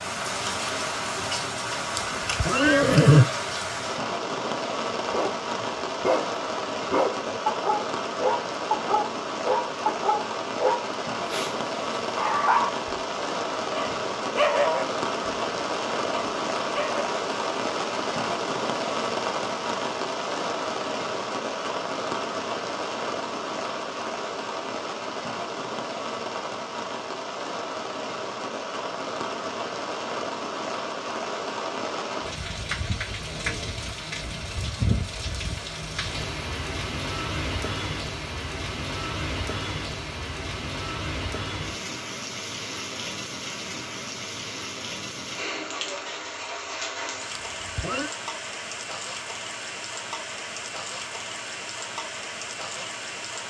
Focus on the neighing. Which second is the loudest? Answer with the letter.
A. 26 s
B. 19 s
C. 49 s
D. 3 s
D.